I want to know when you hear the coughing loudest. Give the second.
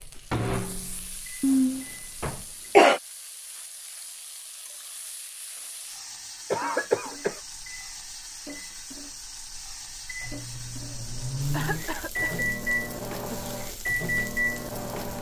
3 s.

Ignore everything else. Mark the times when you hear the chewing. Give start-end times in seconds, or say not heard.
not heard.